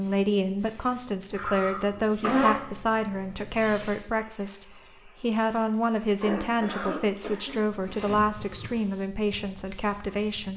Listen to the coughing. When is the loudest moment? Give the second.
2 s.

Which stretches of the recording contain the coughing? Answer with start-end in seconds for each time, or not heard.
1.3-2.6, 6.2-8.8.